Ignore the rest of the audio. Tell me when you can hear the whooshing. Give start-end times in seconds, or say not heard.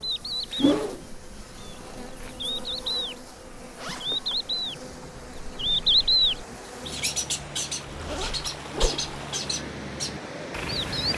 0.6-1.0, 8.7-9.1.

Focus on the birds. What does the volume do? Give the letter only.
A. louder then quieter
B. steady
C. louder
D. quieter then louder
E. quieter
A.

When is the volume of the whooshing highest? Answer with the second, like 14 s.
1 s.